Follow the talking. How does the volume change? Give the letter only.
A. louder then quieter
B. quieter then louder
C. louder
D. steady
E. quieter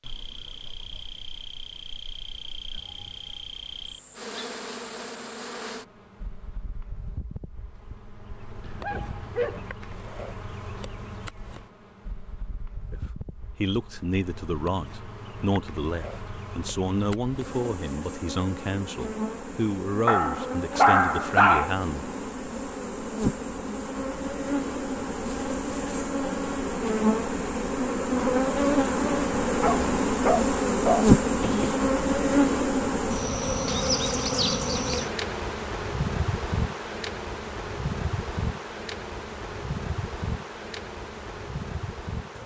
D.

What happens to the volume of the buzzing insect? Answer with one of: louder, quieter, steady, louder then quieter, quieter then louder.
louder then quieter.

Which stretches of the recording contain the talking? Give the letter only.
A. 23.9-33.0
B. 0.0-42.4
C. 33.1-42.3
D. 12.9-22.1
D.